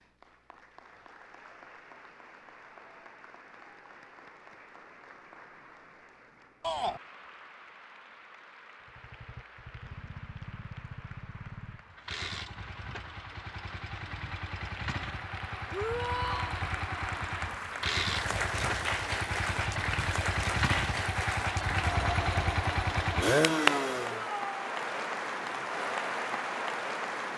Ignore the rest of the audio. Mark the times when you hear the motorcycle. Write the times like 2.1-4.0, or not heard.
8.8-24.2.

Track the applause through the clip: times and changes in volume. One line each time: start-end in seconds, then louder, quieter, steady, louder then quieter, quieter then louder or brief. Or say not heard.
0.0-27.3 louder.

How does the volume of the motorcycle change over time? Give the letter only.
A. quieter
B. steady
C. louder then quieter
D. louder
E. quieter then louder
D.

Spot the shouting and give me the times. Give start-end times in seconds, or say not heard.
6.6-7.0, 15.7-16.6, 24.1-24.7.